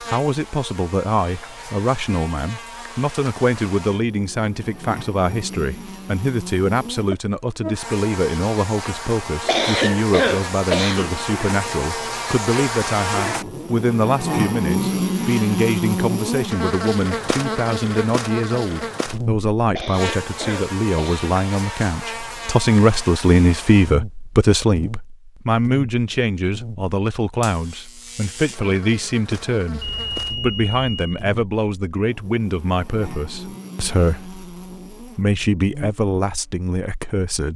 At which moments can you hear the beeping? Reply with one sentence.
The beeping can be heard from 29.8 to 31.2 s.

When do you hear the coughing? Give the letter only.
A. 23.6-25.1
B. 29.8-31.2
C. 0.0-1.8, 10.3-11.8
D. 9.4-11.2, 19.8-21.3
D.